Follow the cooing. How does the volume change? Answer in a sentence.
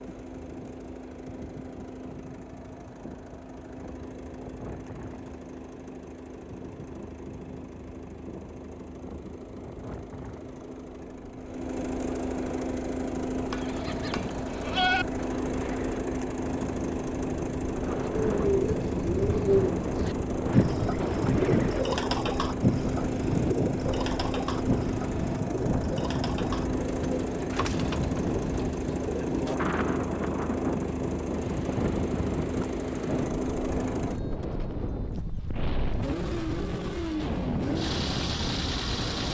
The loudness of the cooing goes down.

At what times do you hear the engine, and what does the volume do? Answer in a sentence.
You can hear the engine from 0.0 to 39.3 s, getting louder.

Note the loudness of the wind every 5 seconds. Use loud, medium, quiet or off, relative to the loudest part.
quiet, quiet, medium, loud, loud, loud, loud, loud.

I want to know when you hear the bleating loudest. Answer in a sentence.
The loudest moment of the bleating is at 15 seconds.